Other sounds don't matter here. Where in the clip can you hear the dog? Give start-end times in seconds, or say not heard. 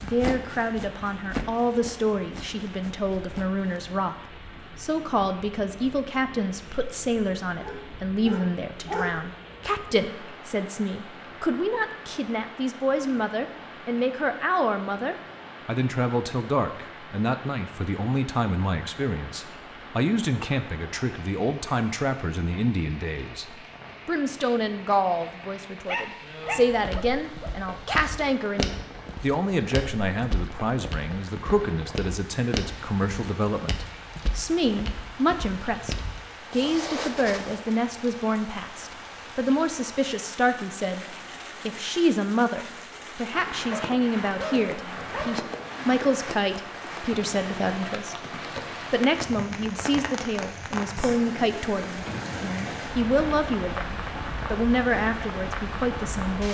7.6-9.2, 25.9-28.0, 43.7-45.5.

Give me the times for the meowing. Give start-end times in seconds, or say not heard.
not heard.